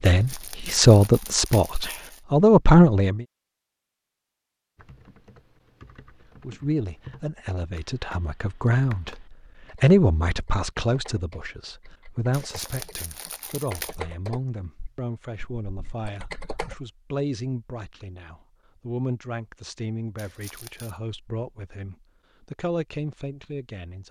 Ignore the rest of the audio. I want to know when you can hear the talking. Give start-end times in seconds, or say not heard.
0.0-3.2, 6.4-9.2, 9.8-24.0.